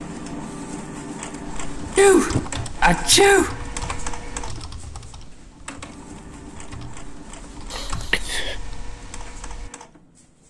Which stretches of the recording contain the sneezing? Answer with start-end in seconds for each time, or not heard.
1.9-3.5, 7.7-8.6.